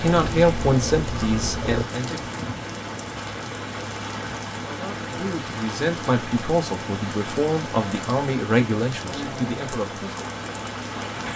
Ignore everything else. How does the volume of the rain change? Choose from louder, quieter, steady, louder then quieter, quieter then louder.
steady.